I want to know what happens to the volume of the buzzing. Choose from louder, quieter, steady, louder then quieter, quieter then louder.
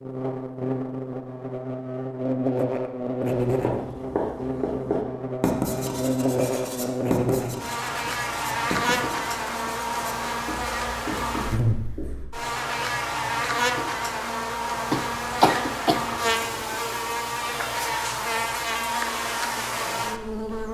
steady.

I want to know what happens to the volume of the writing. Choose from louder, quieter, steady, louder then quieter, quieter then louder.
quieter.